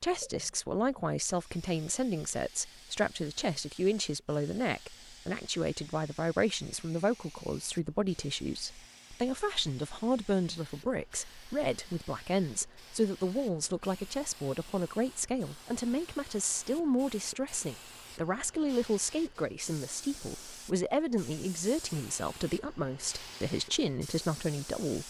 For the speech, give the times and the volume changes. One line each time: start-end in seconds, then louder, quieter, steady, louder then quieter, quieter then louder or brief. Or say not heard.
0.0-25.0 steady.